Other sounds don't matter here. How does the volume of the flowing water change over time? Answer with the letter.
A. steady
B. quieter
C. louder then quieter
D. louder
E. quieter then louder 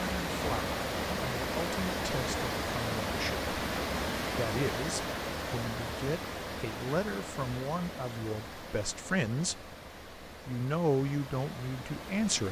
B.